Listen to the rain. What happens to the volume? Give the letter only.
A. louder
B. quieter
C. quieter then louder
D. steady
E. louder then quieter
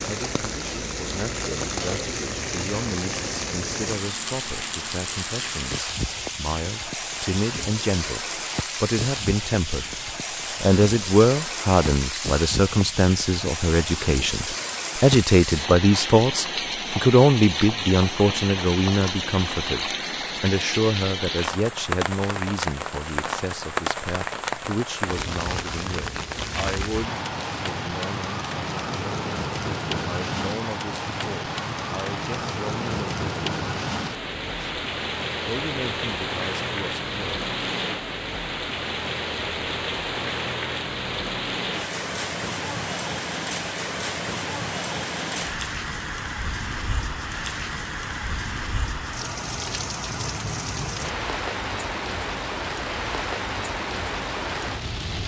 D.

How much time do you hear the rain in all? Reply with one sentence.
The rain can be heard for 55 seconds in total.